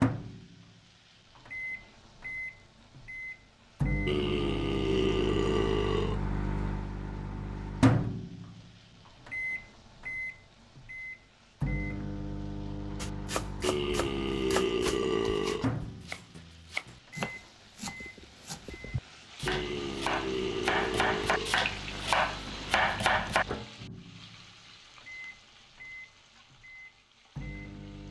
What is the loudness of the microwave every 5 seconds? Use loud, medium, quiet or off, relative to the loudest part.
loud, loud, medium, medium, quiet, quiet.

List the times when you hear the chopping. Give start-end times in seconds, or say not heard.
13.0-23.4.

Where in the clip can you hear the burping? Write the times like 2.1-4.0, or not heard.
4.0-6.2, 13.6-15.7, 19.4-21.6.